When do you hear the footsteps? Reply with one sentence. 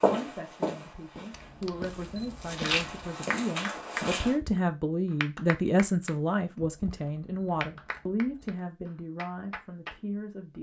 The footsteps can be heard from 0.0 to 4.3 s.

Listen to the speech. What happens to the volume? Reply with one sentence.
The loudness of the speech goes up, then down.